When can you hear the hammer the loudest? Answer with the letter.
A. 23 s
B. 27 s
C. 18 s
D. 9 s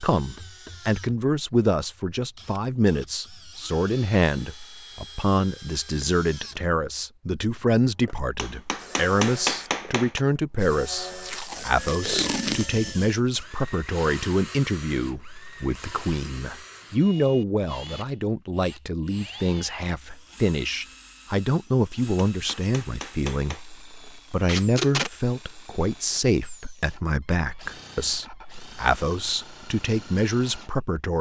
D.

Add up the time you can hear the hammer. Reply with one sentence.
You can hear the hammer for 3 seconds altogether.